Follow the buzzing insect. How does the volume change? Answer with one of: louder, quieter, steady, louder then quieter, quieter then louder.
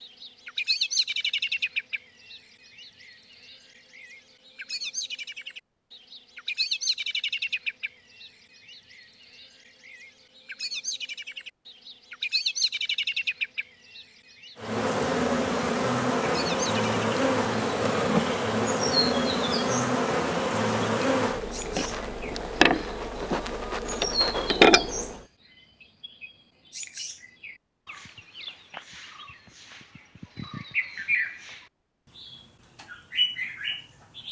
steady.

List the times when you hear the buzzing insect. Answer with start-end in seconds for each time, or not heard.
14.6-25.2.